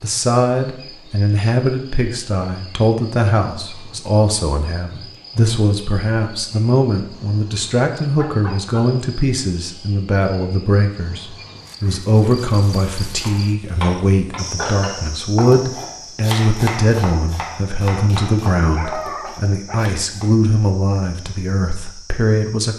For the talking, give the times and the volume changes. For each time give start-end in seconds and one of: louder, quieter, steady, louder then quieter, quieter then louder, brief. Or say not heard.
0.0-22.7 steady.